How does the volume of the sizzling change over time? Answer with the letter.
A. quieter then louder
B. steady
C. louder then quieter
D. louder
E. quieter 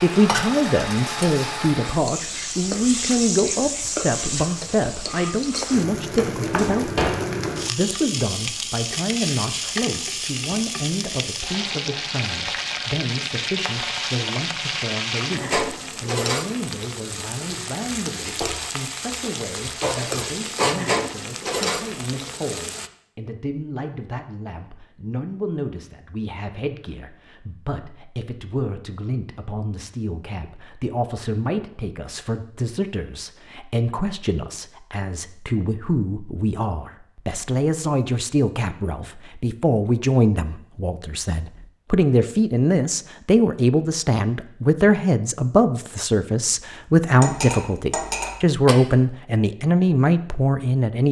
B.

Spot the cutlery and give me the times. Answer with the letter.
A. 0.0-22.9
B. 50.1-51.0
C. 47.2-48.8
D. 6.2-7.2
C.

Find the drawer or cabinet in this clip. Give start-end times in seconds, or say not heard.
6.2-7.2.